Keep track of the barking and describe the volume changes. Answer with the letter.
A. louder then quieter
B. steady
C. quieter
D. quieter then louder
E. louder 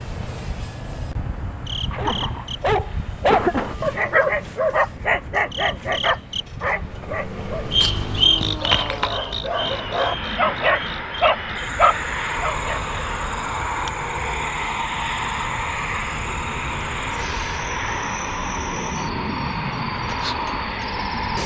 D.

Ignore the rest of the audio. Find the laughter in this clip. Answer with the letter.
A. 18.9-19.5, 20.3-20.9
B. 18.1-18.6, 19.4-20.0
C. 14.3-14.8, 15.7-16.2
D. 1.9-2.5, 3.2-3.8
D.